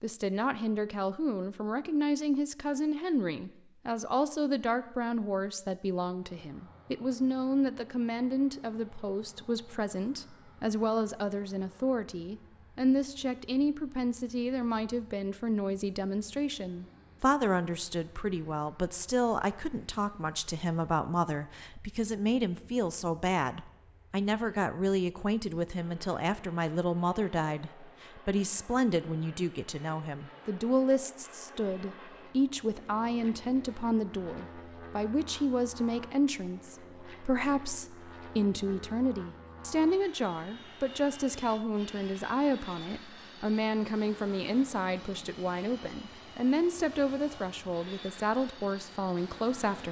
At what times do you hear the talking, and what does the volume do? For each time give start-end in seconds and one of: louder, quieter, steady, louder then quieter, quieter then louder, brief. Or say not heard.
0.0-49.8 steady.